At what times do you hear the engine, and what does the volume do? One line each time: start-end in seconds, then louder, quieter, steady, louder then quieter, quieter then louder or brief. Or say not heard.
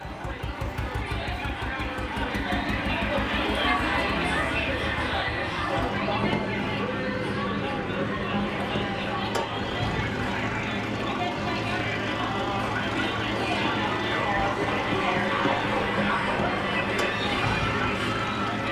0.0-18.6 steady.